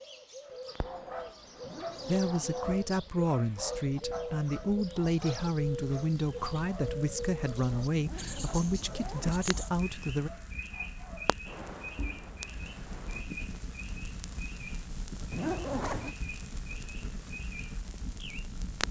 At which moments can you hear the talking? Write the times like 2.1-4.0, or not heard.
2.0-10.3.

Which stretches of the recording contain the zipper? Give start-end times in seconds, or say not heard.
1.6-2.7, 8.0-9.4, 15.3-16.1.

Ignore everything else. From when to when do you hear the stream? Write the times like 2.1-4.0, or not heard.
not heard.